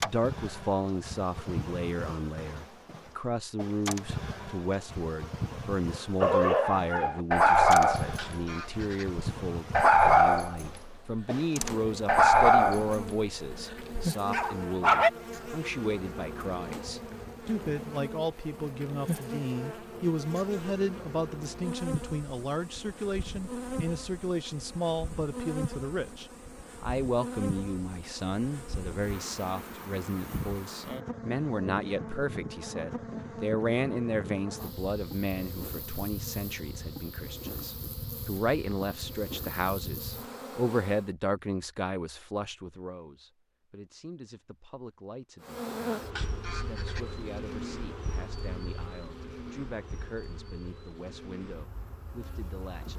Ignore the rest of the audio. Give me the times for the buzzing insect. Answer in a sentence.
The buzzing insect can be heard from 0.0 to 41.1 s and from 45.4 to 52.9 s.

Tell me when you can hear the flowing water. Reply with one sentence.
You can't hear the flowing water here.